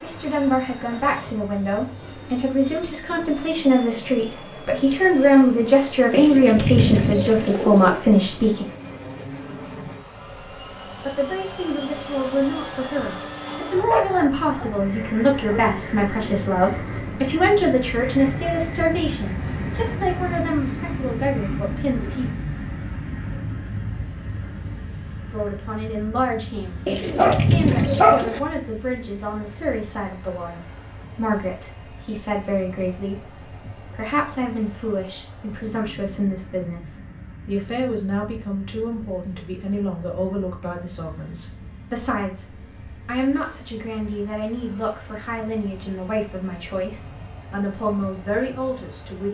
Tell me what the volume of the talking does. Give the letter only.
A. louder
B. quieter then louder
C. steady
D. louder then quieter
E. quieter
E.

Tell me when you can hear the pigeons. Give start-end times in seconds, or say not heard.
6.1-8.1, 26.9-28.4.